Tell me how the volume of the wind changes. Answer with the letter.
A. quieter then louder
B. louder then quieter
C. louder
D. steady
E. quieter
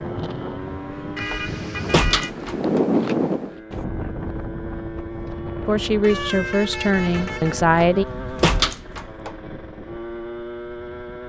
B.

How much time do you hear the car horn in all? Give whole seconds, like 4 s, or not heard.
3 s.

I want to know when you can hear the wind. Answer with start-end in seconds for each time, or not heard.
0.0-8.4.